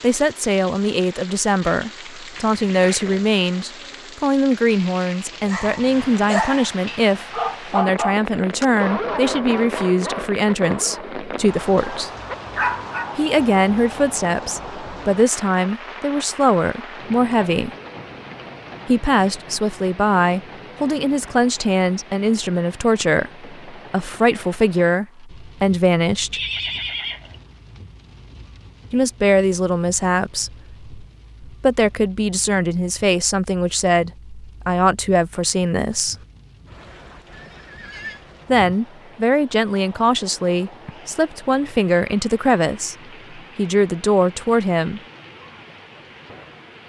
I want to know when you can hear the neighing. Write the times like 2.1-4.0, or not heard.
2.4-3.3, 26.3-27.4, 37.3-38.2.